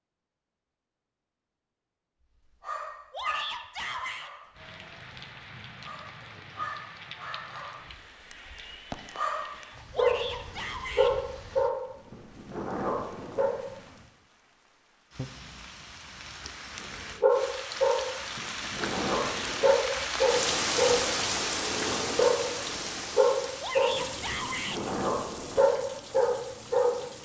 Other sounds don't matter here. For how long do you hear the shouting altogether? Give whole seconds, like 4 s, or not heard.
4 s.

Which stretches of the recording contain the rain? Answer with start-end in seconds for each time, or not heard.
4.5-27.1.